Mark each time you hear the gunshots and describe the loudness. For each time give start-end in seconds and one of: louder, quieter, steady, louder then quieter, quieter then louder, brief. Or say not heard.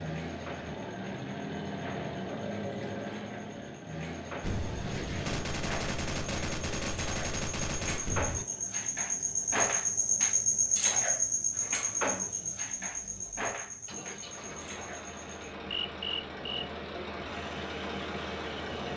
4.4-8.4 steady.